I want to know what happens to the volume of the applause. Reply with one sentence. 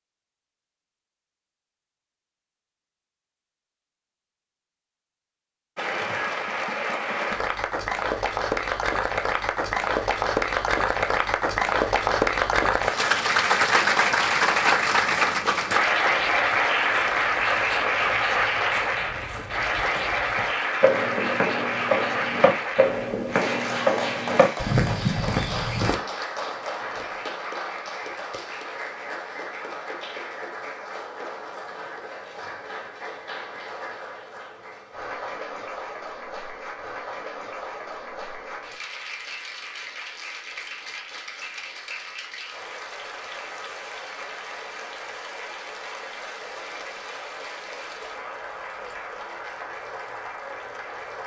The loudness of the applause goes down.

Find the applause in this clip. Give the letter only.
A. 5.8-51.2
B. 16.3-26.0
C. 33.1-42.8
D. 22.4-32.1
A.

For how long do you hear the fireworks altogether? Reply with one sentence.
The fireworks can't be heard in this clip.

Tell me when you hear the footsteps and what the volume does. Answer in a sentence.
You can hear the footsteps from 16.3 to 26.0 s, getting louder.